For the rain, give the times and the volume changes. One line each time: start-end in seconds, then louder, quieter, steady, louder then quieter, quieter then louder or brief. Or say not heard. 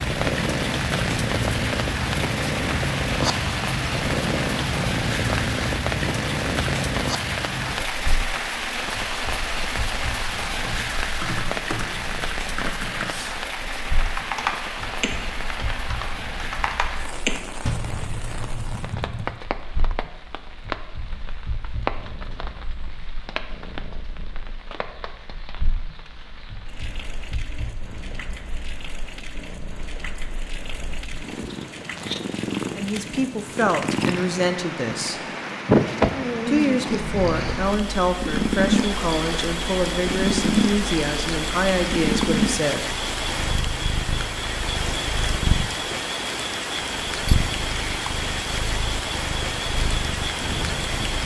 0.0-51.2 quieter then louder.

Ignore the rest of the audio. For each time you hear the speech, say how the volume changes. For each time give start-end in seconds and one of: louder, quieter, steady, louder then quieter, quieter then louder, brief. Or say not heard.
32.8-35.3 brief
36.5-42.9 steady.